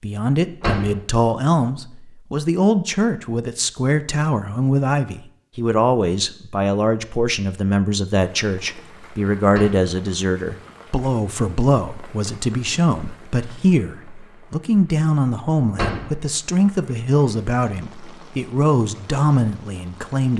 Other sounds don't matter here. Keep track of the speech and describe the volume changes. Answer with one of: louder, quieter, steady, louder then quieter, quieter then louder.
steady.